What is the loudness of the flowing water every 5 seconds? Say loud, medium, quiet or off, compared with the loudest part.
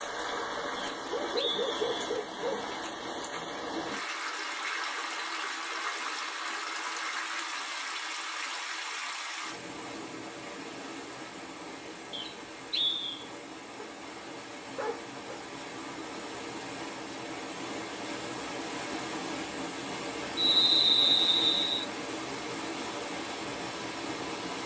loud, loud, medium, loud, loud.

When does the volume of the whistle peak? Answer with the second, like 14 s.
21 s.